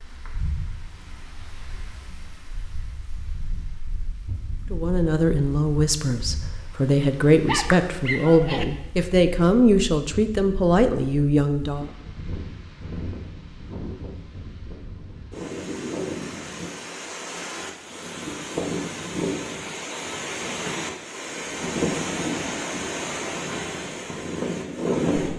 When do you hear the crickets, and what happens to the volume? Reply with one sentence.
You can't hear the crickets here.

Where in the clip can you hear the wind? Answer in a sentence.
The wind can be heard from 0.0 to 25.3 s.